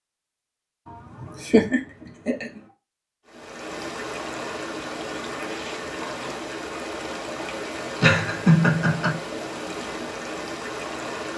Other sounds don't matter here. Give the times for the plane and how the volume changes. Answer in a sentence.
The plane can't be heard in this clip.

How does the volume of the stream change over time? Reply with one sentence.
The volume of the stream stays about the same.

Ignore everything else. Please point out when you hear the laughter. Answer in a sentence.
You can hear the laughter from 1.2 to 2.6 s and from 8.0 to 9.2 s.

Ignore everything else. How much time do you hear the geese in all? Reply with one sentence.
The geese can't be heard in this clip.